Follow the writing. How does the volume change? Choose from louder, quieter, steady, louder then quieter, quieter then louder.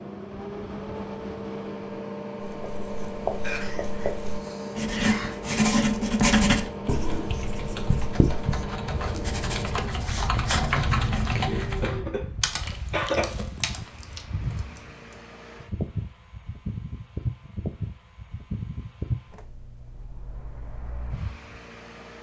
louder then quieter.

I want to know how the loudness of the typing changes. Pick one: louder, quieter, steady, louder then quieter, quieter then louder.
louder then quieter.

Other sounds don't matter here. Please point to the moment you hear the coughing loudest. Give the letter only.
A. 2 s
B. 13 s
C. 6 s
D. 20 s
B.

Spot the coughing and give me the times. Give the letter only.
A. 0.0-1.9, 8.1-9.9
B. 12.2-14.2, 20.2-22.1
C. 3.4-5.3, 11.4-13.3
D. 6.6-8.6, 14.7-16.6
C.